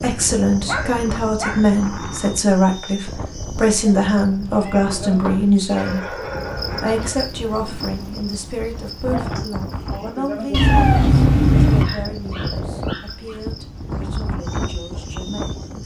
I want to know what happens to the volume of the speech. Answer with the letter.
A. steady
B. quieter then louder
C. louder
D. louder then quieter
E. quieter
E.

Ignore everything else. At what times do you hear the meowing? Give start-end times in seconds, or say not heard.
4.2-5.7, 10.5-11.8.